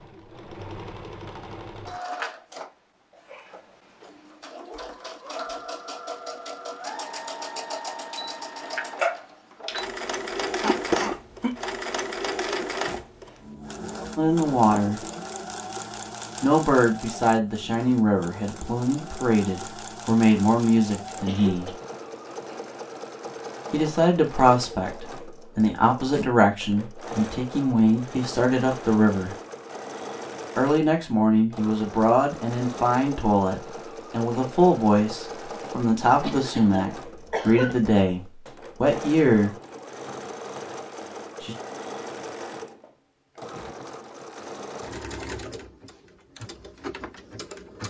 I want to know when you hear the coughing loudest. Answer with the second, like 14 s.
11 s.